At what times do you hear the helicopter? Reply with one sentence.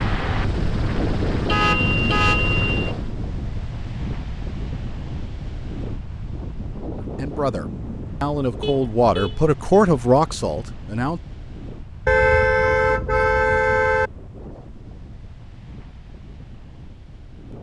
You can hear the helicopter from 0.0 to 3.1 s.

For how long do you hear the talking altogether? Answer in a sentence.
You can hear the talking for 4 seconds altogether.